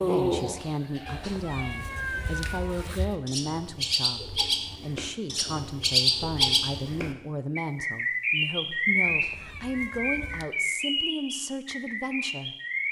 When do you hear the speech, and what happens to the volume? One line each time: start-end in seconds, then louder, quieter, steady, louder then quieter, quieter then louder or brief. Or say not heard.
0.0-12.6 steady.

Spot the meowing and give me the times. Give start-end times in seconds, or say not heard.
1.1-3.0, 9.0-10.4.